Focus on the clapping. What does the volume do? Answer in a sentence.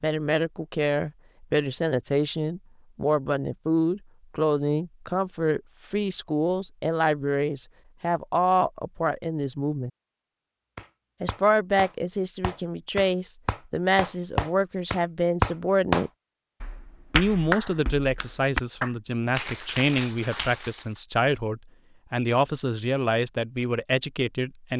The volume of the clapping goes up, then down.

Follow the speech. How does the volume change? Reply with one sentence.
The volume of the speech stays about the same.